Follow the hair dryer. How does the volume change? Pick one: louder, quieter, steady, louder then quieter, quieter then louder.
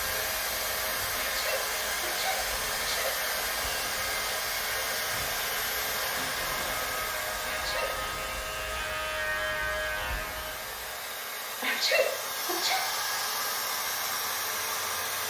quieter then louder.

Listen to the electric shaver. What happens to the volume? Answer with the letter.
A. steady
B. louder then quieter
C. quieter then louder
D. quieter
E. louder
E.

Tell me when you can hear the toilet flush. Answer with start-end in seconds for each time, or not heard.
6.0-7.2.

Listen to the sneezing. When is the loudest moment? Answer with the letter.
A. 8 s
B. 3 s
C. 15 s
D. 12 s
D.